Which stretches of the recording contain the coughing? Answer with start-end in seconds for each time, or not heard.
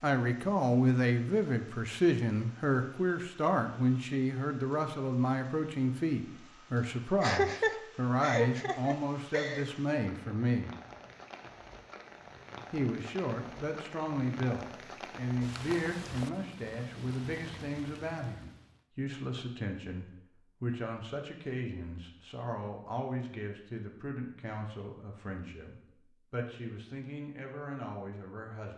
7.2-9.7.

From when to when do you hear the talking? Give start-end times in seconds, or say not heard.
0.0-10.8, 12.7-28.7.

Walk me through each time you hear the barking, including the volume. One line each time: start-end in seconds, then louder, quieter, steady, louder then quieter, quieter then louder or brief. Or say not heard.
not heard.